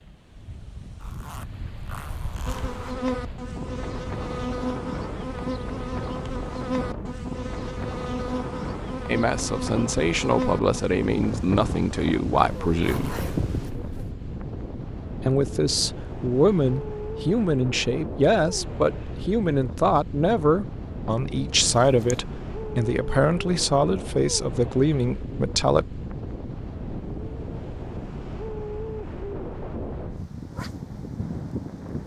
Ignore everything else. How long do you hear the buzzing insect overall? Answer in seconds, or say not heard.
11 s.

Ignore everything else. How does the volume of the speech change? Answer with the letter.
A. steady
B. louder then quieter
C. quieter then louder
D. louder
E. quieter
A.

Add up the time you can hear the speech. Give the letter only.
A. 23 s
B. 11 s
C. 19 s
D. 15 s
D.